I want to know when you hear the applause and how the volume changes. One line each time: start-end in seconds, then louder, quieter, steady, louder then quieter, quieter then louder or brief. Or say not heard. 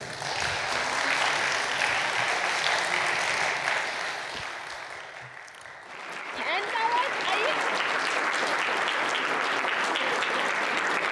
0.0-11.0 quieter then louder.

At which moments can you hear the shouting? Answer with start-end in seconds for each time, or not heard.
6.3-7.5.